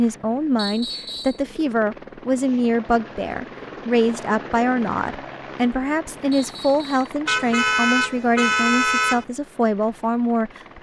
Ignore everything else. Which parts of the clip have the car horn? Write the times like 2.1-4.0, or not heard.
7.2-9.2.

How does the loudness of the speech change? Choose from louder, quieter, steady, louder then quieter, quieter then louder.
steady.